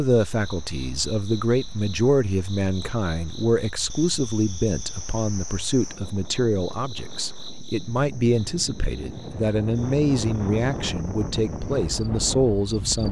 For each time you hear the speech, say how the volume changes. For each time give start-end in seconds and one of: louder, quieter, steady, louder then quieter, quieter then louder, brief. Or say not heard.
0.0-13.0 steady.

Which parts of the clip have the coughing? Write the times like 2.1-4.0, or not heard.
not heard.